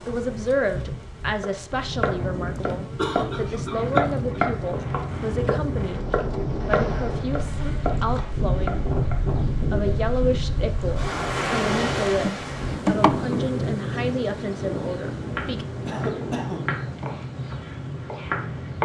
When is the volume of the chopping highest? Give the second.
4 s.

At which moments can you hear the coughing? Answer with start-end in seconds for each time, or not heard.
2.5-4.8, 15.8-16.8.